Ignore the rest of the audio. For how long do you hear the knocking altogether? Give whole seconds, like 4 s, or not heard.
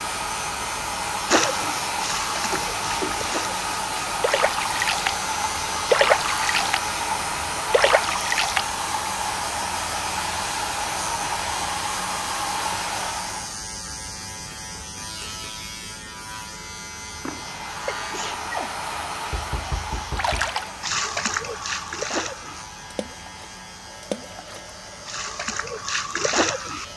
3 s.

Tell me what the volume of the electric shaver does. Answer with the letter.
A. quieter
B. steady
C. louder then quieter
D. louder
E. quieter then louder
A.